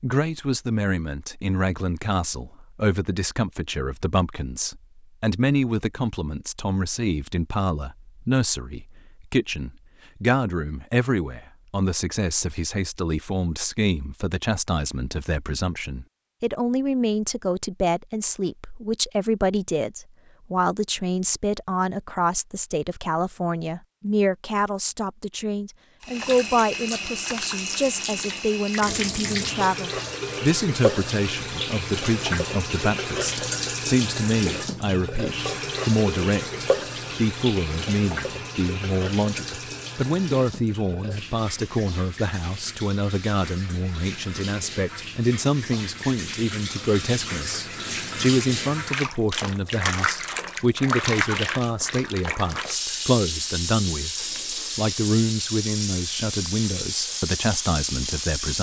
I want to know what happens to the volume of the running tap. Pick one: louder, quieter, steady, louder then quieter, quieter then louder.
quieter then louder.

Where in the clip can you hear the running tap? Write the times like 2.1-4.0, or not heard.
26.0-58.5.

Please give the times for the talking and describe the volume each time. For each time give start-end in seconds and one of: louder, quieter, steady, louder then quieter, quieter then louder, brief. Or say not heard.
0.0-58.5 steady.